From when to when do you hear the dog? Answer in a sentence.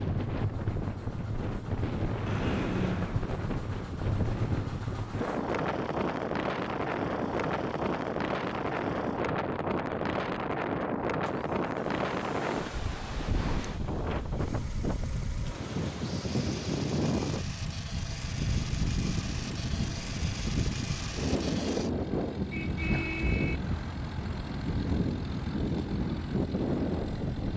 You can't hear the dog here.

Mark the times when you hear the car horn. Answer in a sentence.
You can hear the car horn from 2.2 to 3.2 s and from 22.5 to 23.6 s.